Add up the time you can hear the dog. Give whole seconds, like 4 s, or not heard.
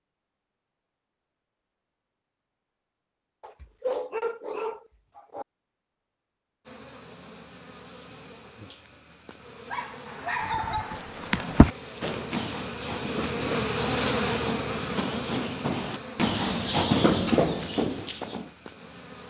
4 s.